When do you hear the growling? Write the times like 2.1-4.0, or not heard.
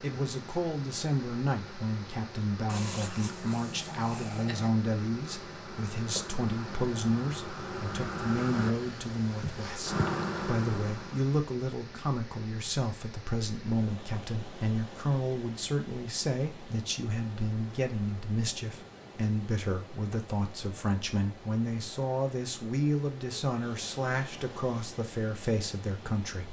2.6-4.7.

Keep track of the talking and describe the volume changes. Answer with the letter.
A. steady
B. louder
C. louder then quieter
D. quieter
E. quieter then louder
A.